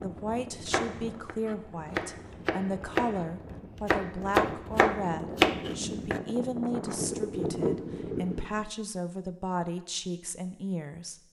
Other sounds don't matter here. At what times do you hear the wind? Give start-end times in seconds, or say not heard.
0.0-8.7.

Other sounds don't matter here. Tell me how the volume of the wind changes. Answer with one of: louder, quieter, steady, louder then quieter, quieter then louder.
louder.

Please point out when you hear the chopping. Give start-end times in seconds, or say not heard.
0.7-6.2.